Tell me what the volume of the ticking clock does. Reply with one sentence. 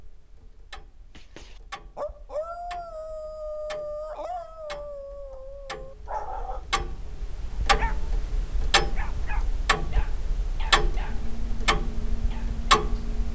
The loudness of the ticking clock goes up.